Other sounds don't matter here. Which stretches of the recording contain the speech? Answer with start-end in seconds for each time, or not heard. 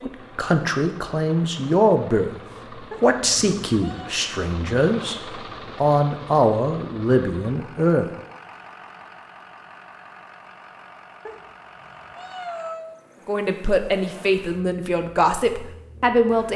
0.0-2.3, 3.0-5.2, 5.8-8.1, 13.2-16.5.